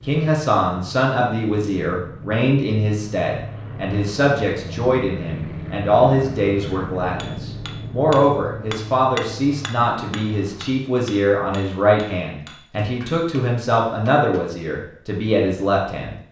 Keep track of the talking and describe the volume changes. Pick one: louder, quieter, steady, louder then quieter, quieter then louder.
steady.